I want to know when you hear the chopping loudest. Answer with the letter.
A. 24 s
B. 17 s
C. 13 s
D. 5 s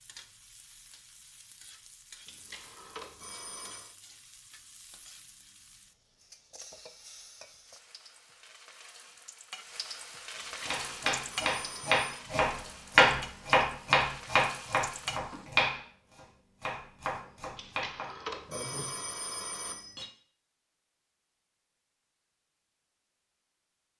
C.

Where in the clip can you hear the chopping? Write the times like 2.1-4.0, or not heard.
10.6-18.8.